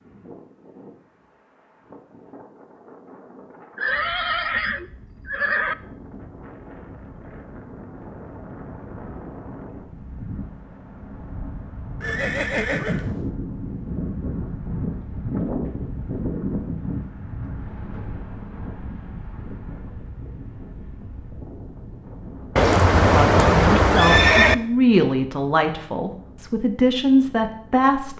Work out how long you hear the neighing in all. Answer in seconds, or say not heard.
5 s.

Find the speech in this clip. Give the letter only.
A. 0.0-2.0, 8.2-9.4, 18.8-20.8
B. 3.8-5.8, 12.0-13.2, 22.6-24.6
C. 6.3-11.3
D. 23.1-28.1
D.